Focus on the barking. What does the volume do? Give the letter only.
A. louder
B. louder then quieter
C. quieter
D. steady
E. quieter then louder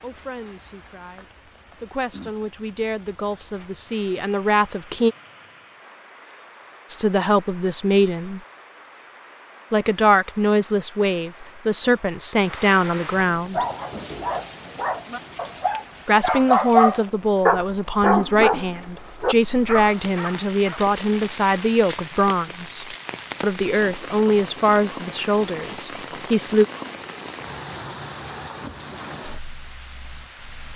B.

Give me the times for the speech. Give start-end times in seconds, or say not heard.
0.0-5.2, 6.8-8.4, 9.7-13.7, 16.1-26.6.